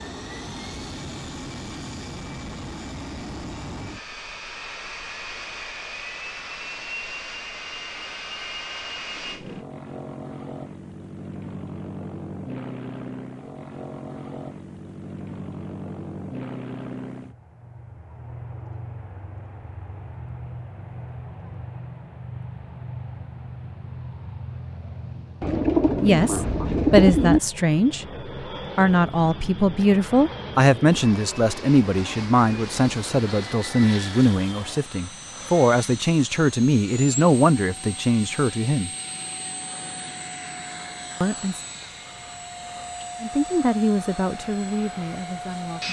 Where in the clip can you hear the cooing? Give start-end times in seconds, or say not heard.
25.4-27.4.